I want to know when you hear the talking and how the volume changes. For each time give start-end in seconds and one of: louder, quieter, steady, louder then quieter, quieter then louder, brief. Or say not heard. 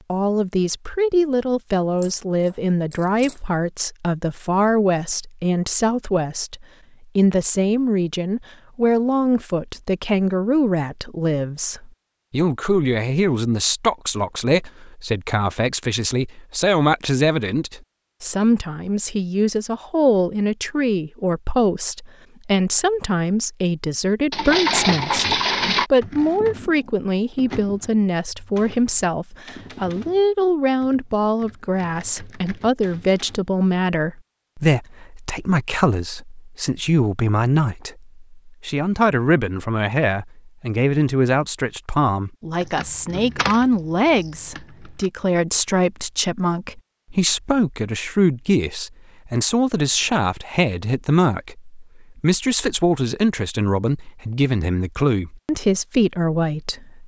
0.1-57.0 steady.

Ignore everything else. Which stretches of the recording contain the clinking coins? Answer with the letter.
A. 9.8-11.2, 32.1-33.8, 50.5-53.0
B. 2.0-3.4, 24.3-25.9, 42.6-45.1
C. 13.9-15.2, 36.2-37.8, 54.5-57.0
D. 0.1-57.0
B.